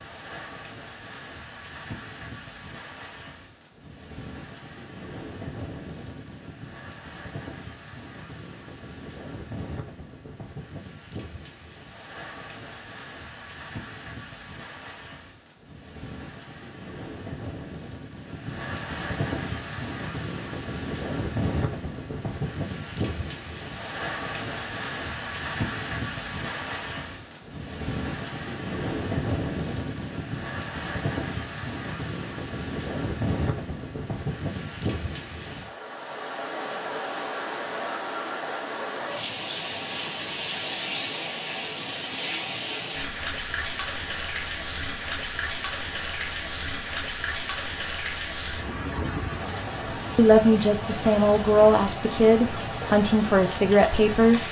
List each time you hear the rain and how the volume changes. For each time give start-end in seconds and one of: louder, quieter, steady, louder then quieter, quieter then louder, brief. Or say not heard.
0.0-54.4 louder.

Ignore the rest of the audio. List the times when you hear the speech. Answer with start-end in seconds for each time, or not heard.
50.1-54.4.